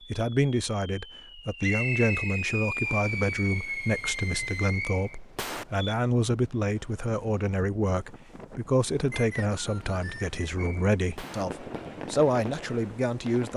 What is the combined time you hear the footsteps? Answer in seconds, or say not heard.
not heard.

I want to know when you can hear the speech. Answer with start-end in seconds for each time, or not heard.
0.1-13.5.